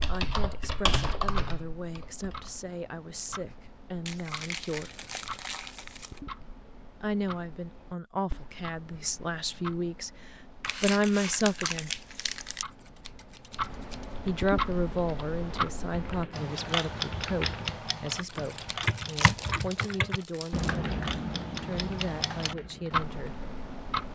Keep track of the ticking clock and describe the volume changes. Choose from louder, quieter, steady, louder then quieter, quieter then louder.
louder.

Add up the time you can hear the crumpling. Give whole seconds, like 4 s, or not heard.
7 s.